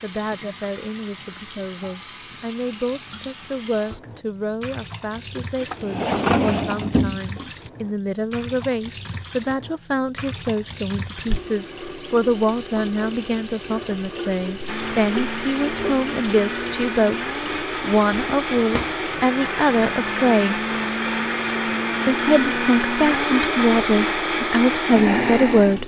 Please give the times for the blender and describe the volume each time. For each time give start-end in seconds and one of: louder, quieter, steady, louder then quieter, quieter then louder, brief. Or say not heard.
14.7-25.8 louder.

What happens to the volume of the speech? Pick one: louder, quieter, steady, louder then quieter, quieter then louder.
louder.